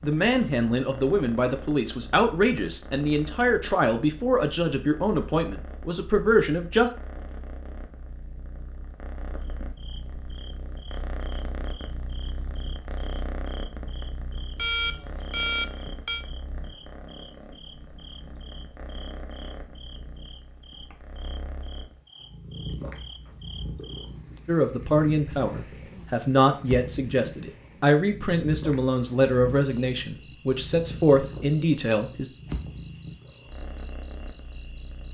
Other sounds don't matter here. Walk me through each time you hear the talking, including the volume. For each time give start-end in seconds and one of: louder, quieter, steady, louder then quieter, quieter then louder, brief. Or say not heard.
0.0-6.9 steady
24.4-32.3 steady.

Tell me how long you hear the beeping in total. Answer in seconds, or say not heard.
2 s.